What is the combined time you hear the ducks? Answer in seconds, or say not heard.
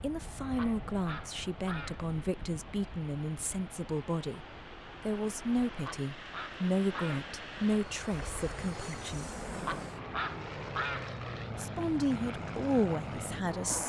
4 s.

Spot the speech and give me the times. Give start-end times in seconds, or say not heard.
0.0-9.3, 11.6-13.8.